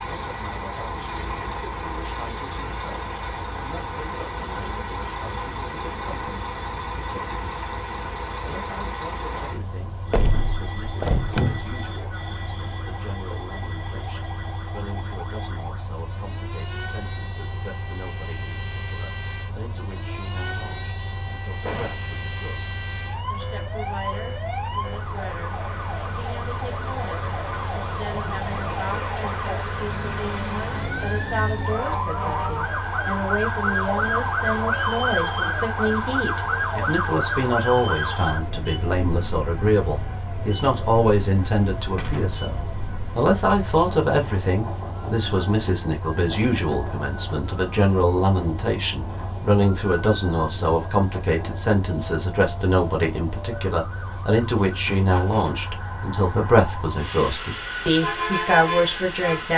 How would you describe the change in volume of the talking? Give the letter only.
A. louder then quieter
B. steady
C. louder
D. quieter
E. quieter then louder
C.